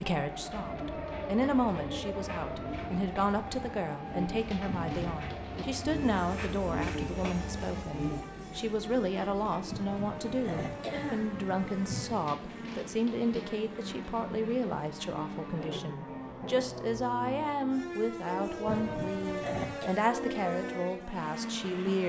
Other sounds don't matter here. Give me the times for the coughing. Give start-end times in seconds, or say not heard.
4.7-5.2, 9.7-12.3, 18.6-20.0.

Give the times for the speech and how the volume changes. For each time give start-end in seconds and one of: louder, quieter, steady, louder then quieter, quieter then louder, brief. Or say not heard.
0.0-22.0 steady.